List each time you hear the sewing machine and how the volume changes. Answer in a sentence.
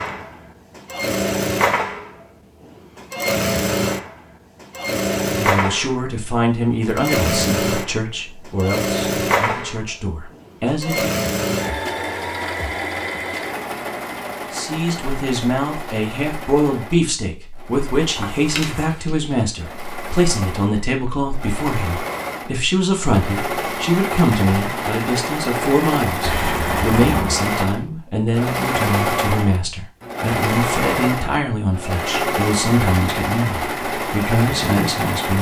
The sewing machine can be heard from 0.0 to 35.3 s, getting quieter then louder.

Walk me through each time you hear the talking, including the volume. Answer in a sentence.
You can hear the talking from 5.3 to 11.2 s, getting quieter then louder; and from 14.5 to 35.3 s, at a steady volume.